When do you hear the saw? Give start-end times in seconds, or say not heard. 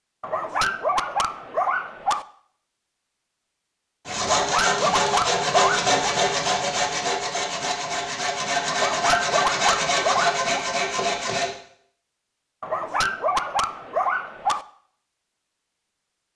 4.0-11.6.